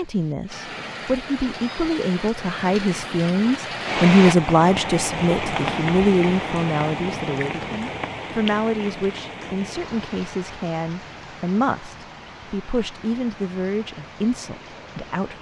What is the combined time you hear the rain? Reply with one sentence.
You can hear the rain for 15 seconds altogether.